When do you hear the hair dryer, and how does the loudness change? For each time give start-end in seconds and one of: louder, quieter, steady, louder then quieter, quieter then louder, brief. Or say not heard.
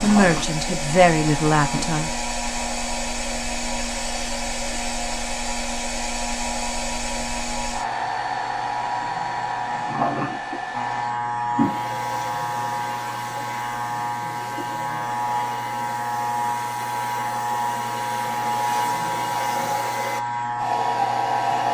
0.0-21.6 quieter then louder.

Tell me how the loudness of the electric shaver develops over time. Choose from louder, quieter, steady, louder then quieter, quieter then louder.
louder.